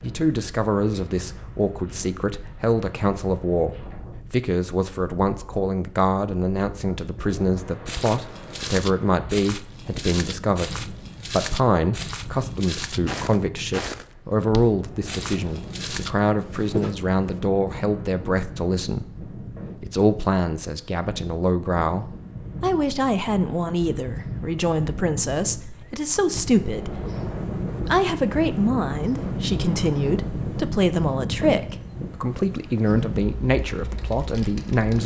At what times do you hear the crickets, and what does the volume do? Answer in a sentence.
The crickets can't be heard in this clip.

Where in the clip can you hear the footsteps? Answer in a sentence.
The footsteps can be heard from 7.8 to 17.4 s.